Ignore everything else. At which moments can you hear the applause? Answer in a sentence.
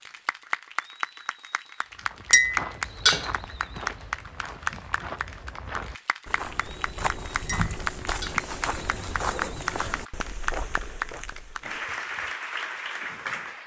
You can hear the applause from 0.0 to 13.6 s.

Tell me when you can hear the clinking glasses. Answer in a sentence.
You can hear the clinking glasses from 2.3 to 3.3 s and from 7.5 to 8.4 s.